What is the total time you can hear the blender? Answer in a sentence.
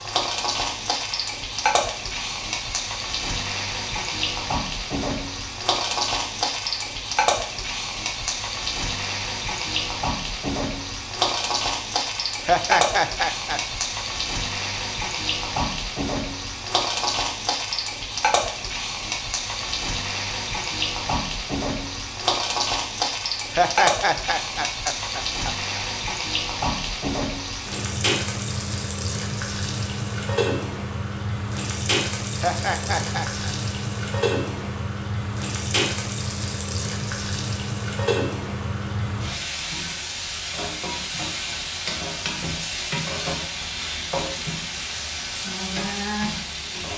The blender can't be heard in this clip.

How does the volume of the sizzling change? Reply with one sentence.
The loudness of the sizzling stays about the same.